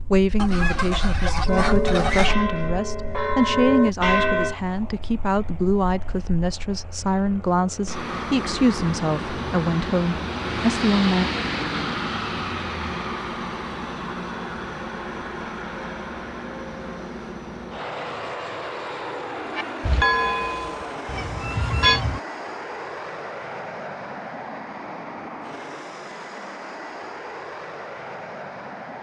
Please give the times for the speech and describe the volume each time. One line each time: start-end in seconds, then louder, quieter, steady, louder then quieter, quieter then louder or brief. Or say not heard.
0.0-11.2 steady.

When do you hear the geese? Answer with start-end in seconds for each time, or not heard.
0.3-2.4, 21.1-22.2.